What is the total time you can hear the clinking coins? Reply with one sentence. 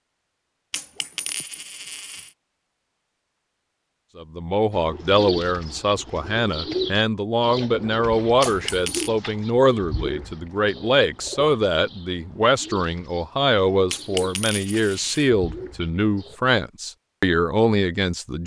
The clinking coins can be heard for 4 seconds in total.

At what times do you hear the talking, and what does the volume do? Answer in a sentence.
You can hear the talking from 4.2 to 18.4 s, at a steady volume.